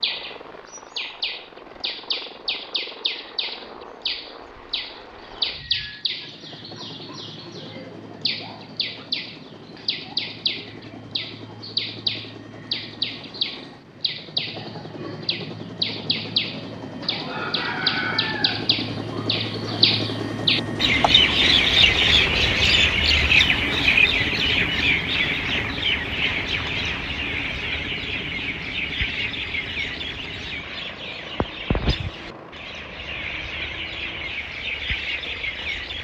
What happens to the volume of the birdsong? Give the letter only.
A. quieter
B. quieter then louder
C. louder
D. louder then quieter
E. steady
D.